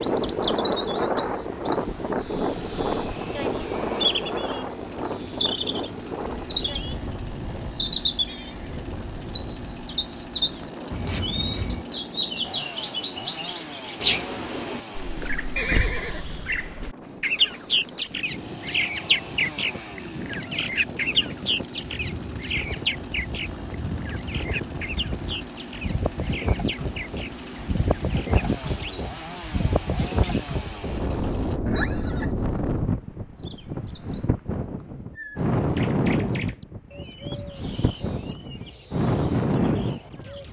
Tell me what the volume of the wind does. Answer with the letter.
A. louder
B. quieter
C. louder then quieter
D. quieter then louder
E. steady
D.